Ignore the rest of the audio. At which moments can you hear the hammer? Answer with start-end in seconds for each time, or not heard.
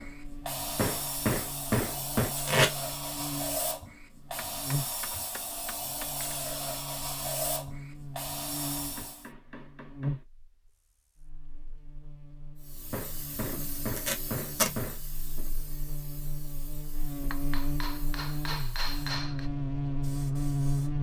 0.8-2.4, 4.3-6.3, 8.8-10.2, 12.9-15.0, 17.3-19.4.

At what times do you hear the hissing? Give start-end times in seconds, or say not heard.
0.0-9.3, 12.6-20.9.